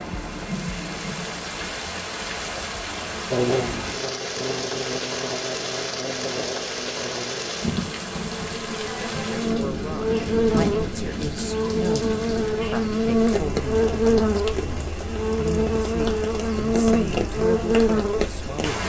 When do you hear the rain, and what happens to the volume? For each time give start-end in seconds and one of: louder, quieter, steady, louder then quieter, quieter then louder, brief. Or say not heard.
0.0-18.8 steady.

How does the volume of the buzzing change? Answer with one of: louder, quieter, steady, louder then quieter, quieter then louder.
louder.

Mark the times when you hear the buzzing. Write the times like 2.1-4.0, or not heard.
3.3-18.8.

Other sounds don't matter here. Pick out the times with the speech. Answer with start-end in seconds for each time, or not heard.
8.8-18.8.